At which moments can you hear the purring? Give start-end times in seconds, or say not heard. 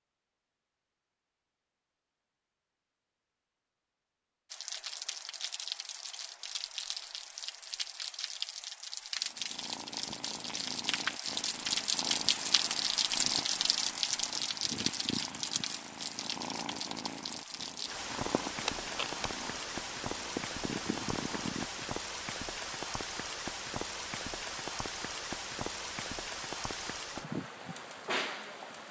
9.3-21.9.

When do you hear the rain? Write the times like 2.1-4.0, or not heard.
4.5-28.8.